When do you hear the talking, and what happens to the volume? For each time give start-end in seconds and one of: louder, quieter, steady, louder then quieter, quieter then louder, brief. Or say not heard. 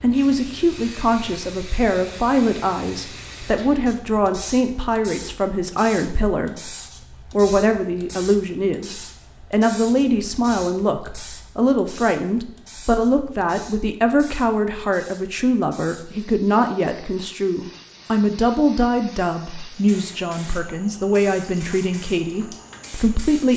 0.0-23.5 steady.